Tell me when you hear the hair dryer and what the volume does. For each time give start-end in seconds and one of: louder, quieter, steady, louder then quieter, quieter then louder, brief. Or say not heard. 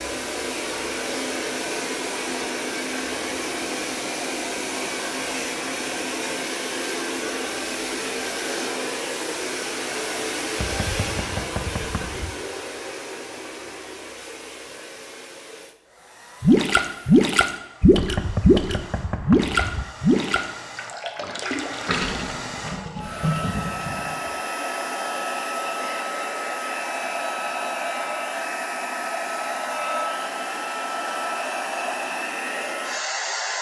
0.0-33.5 quieter then louder.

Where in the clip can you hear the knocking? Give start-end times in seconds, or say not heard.
10.6-12.3, 17.9-19.9.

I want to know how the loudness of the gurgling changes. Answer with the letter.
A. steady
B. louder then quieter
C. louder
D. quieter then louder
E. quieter
E.